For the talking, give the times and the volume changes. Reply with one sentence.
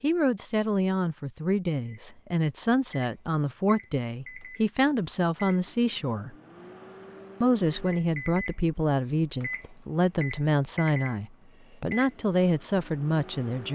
The talking can be heard from 0.0 to 6.3 s, at a steady volume; and from 7.4 to 13.7 s, at a steady volume.